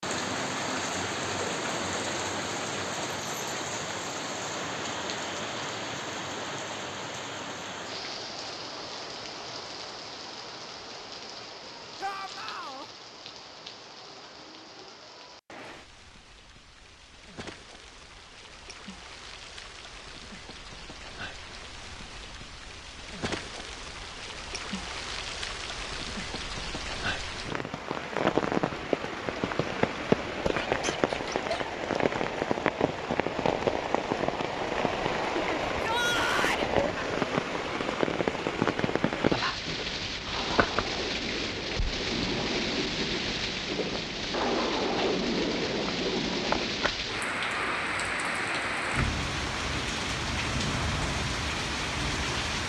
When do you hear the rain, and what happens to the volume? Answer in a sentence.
You can hear the rain from 0.0 to 52.6 s, getting quieter then louder.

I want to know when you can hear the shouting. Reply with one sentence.
You can hear the shouting from 12.0 to 12.8 s and from 35.8 to 36.6 s.